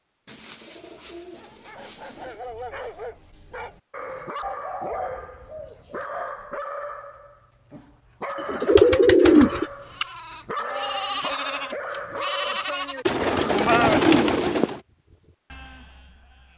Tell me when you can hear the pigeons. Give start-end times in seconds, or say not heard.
0.2-2.4, 4.4-6.3, 8.4-10.1, 13.1-14.8.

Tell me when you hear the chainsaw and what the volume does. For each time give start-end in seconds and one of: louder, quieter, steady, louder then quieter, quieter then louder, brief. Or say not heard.
not heard.